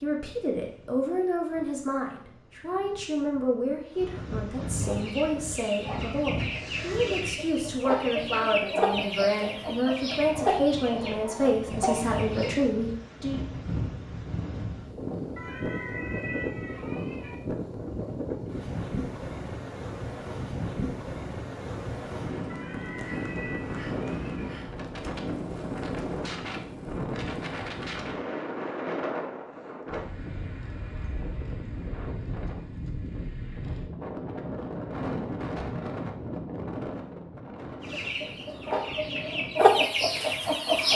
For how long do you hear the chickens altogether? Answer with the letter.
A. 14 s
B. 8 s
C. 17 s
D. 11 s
D.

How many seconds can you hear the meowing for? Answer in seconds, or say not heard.
4 s.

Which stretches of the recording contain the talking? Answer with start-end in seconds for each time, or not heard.
0.0-13.4.